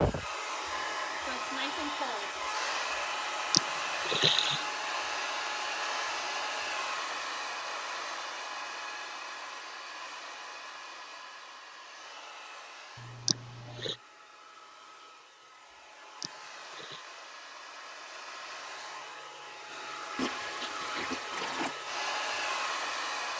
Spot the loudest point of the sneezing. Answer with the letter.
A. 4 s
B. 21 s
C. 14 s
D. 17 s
A.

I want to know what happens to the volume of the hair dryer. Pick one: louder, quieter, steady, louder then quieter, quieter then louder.
quieter then louder.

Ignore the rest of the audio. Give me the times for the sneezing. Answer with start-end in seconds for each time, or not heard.
3.5-4.7, 13.2-13.9, 16.2-17.1.